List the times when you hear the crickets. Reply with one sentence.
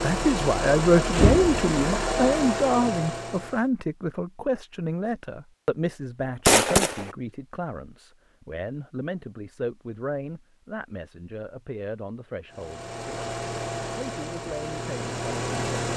The crickets can't be heard in this clip.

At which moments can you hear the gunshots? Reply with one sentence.
You can hear the gunshots from 6.5 to 7.1 s.